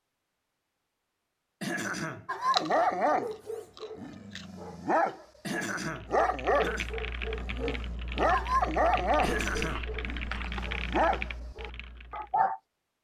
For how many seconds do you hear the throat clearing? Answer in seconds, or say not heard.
3 s.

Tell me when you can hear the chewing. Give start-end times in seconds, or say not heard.
2.4-4.5, 9.1-10.7.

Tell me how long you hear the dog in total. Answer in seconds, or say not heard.
10 s.